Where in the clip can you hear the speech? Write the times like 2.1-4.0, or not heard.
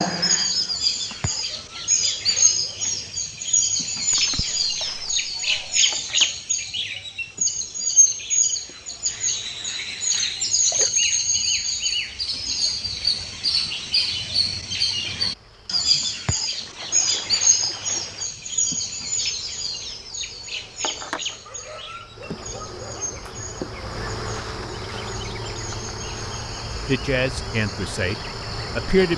26.9-29.1.